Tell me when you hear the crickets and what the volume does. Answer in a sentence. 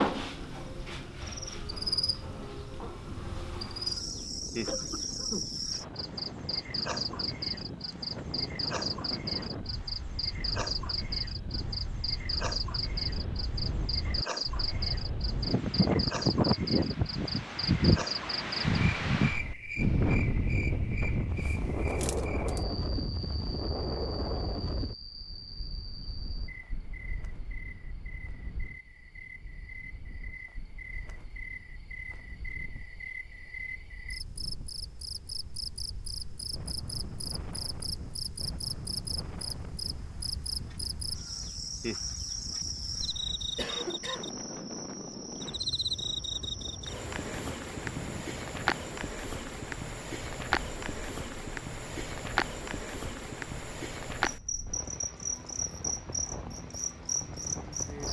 The crickets can be heard from 0.0 to 58.0 s, getting quieter then louder.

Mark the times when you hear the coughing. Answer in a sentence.
You can hear the coughing from 4.7 to 5.5 s and from 43.5 to 44.4 s.